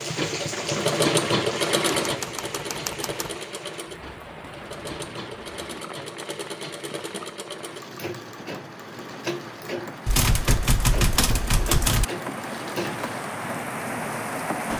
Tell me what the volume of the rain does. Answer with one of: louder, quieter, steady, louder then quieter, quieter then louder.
quieter then louder.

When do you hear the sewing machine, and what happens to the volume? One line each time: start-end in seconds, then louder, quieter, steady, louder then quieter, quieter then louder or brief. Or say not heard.
0.0-13.3 quieter.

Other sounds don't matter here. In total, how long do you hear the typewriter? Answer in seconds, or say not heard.
3 s.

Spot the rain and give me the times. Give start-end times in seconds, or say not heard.
0.0-14.7.